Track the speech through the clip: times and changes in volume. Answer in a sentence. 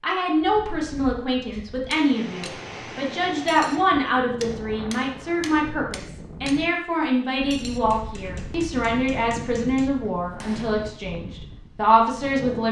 You can hear the speech from 0.0 to 12.6 s, at a steady volume.